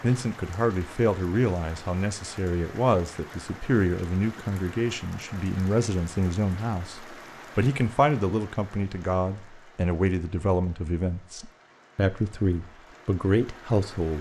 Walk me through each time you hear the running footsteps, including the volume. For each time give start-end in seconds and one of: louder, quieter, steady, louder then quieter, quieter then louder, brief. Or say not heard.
not heard.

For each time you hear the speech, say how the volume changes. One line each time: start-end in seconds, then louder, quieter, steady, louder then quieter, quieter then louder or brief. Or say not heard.
0.0-14.1 steady.